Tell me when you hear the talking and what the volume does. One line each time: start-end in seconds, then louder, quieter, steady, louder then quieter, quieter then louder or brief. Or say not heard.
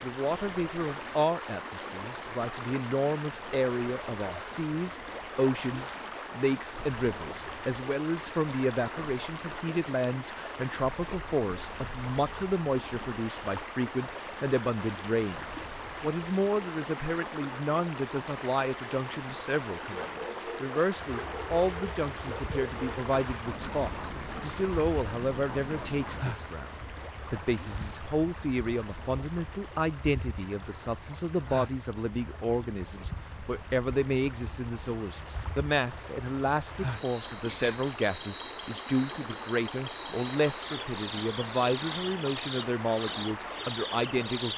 0.0-44.5 steady.